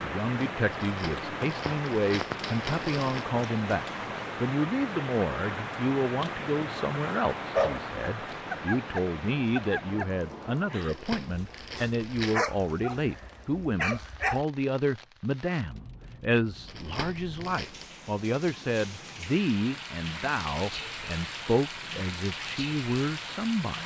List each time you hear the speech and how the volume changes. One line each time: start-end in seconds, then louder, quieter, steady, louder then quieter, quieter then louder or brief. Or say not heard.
0.0-23.8 steady.